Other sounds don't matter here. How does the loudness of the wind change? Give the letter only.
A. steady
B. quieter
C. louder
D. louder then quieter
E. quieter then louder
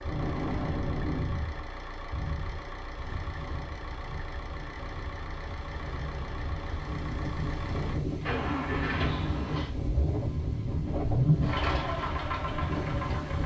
E.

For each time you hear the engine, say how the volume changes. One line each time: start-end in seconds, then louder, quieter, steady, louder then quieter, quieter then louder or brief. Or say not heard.
0.0-13.4 louder.